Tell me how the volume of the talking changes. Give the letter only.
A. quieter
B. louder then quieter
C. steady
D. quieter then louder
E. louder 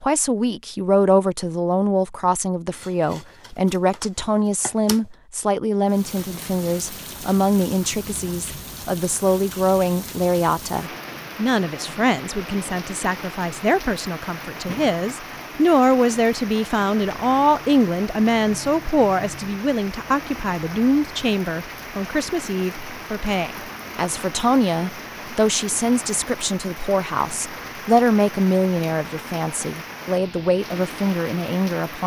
C.